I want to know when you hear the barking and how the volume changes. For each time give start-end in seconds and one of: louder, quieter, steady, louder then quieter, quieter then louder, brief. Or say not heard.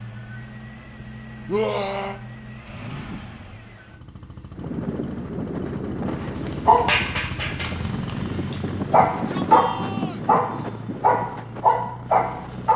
6.5-12.7 louder.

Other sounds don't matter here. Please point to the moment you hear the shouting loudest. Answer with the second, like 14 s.
2 s.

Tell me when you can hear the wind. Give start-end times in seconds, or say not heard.
4.5-12.7.